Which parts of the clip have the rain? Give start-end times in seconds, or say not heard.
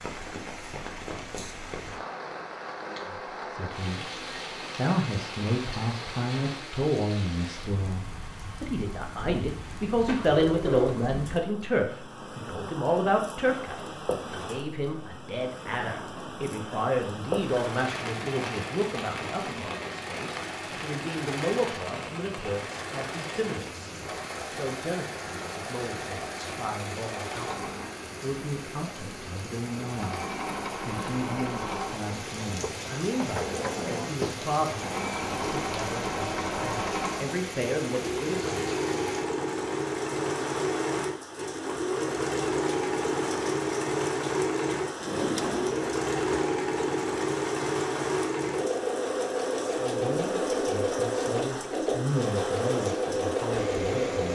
0.0-54.3.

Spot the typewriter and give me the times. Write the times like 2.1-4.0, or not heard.
not heard.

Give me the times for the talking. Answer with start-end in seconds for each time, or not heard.
3.0-30.2, 30.9-38.5, 49.8-54.3.